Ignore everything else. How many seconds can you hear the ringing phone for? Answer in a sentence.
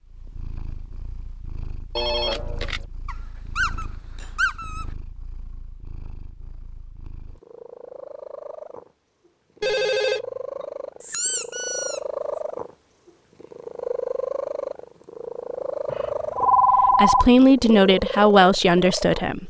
The ringing phone can be heard for 3 seconds in total.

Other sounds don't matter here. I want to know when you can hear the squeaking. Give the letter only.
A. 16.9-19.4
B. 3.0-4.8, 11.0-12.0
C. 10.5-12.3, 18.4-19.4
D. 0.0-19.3
B.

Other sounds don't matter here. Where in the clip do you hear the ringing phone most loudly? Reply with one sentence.
The volume of the ringing phone peaks at 17 seconds.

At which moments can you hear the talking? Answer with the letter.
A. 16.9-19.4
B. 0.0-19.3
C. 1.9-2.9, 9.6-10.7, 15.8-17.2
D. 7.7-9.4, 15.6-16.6
A.